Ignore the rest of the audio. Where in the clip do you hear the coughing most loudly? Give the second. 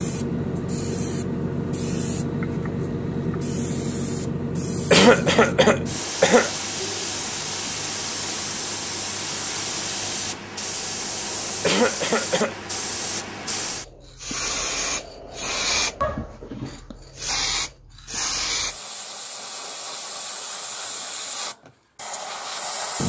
5 s.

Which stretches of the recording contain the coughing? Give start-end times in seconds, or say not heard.
4.9-7.0, 11.6-12.6.